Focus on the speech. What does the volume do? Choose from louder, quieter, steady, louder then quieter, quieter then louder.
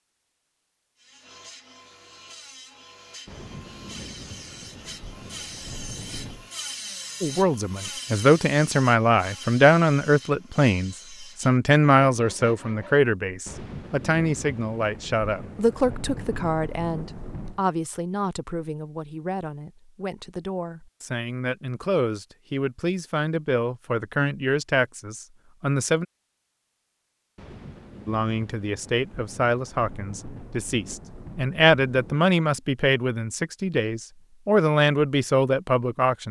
quieter then louder.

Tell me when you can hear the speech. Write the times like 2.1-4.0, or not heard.
7.2-26.1, 28.1-36.2.